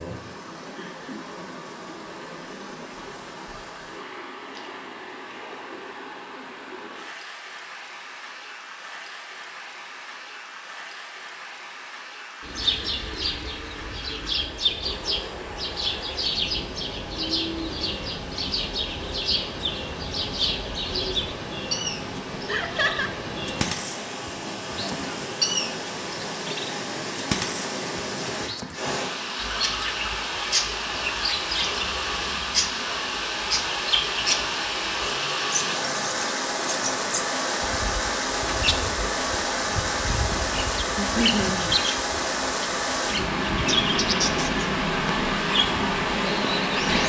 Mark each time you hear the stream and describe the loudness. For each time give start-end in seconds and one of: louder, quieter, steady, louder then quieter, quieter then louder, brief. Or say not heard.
0.0-47.0 louder.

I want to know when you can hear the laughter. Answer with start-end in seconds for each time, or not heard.
0.8-1.3, 22.4-23.1, 41.0-41.7.